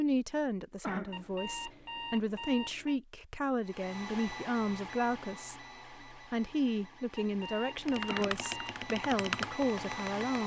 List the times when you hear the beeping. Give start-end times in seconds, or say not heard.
1.1-3.0, 7.2-8.8.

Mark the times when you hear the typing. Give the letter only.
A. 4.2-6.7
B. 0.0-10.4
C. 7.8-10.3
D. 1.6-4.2
C.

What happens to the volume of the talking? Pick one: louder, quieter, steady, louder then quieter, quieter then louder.
steady.